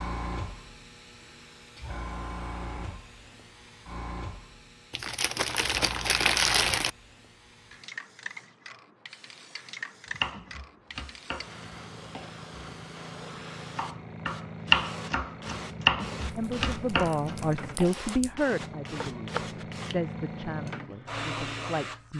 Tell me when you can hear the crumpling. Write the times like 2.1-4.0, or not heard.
4.9-6.9, 16.2-18.3.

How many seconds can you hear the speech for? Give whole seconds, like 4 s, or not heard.
6 s.